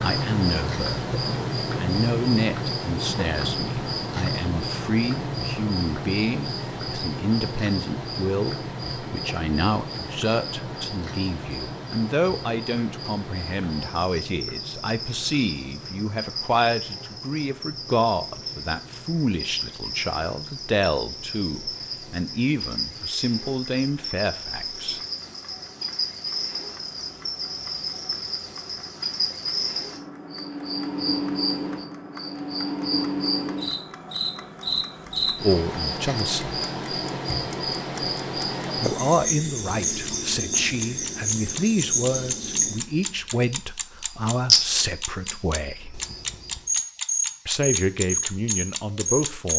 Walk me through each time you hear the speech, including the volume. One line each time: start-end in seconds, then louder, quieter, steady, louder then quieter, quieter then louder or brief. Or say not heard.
0.0-0.8 brief
1.8-25.0 steady
35.4-36.5 brief
38.8-46.0 steady
47.5-49.5 brief.